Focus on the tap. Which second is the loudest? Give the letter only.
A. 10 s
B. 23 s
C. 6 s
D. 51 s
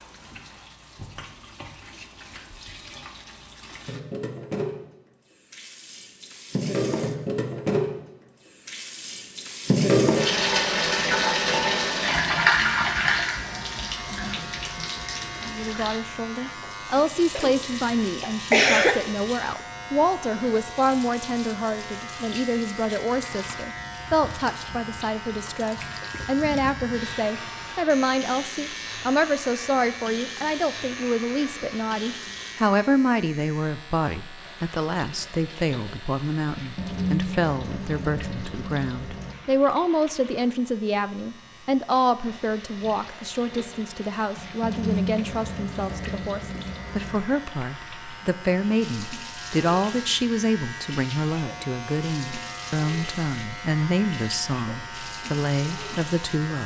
A.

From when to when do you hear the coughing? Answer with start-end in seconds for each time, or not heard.
16.9-18.9.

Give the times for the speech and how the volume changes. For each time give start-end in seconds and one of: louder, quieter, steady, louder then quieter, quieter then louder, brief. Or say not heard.
15.4-56.6 steady.